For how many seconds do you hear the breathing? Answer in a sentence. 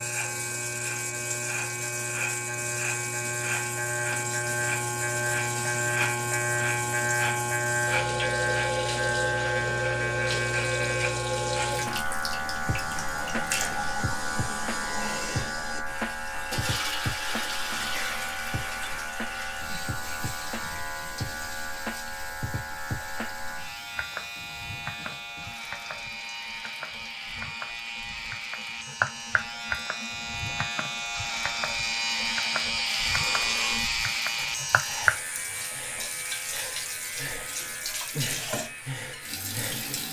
You can hear the breathing for 7 seconds altogether.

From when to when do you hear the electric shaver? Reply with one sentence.
You can hear the electric shaver from 0.0 to 40.0 s.